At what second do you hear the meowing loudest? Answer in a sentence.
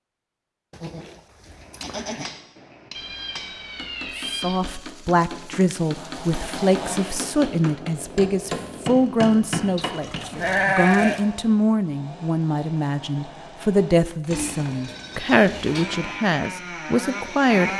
The volume of the meowing peaks at 4 seconds.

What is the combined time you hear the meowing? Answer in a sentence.
You can hear the meowing for 2 seconds altogether.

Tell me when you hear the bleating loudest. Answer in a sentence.
The loudest moment of the bleating is at 11 seconds.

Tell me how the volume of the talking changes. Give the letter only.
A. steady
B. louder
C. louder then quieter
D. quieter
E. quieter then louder
A.